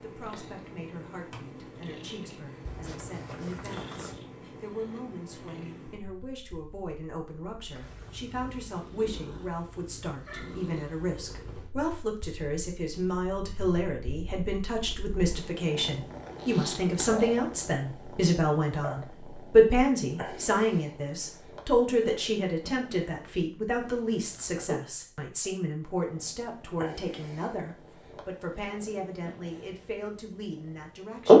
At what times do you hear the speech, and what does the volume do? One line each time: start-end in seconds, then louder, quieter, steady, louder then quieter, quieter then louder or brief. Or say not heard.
0.0-31.3 louder then quieter.